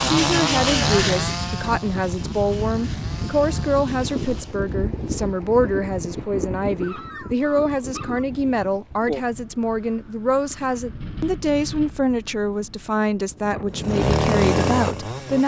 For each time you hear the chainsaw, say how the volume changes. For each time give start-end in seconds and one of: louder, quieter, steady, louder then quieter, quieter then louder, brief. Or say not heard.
0.0-4.6 quieter
13.7-15.4 brief.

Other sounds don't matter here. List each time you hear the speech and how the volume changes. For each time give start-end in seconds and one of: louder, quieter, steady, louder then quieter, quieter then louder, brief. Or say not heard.
0.0-15.4 steady.